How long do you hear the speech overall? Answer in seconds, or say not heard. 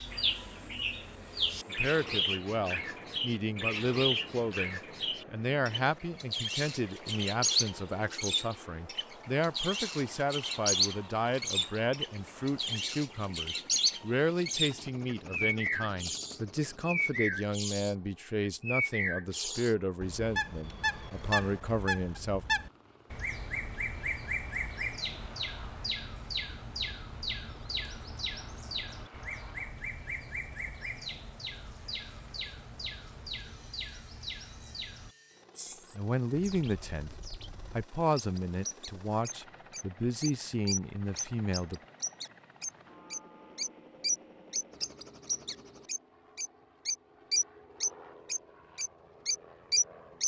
27 s.